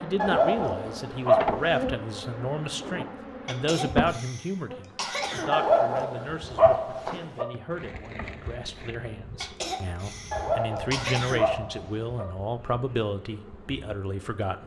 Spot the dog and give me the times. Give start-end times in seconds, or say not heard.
0.1-1.9, 5.5-7.5, 10.3-12.2.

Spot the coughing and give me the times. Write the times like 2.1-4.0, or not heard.
3.5-5.5, 9.4-11.4.